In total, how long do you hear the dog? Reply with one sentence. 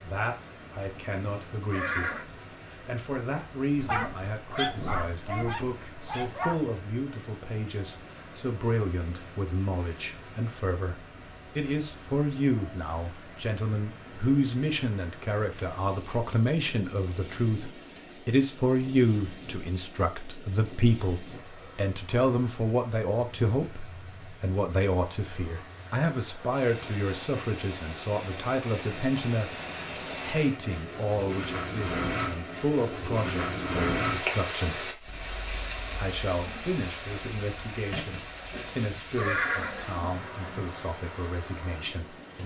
You can hear the dog for 3 seconds altogether.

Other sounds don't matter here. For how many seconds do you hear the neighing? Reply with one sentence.
You can hear the neighing for 2 seconds altogether.